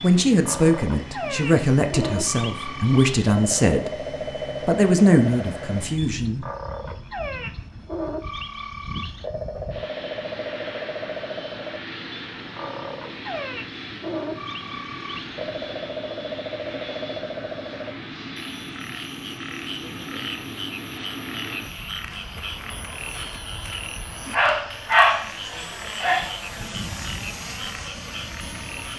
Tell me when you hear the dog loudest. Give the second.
25 s.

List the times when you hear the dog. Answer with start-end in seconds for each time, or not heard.
24.3-26.3.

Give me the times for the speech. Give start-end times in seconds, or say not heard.
0.0-3.9, 4.7-6.5.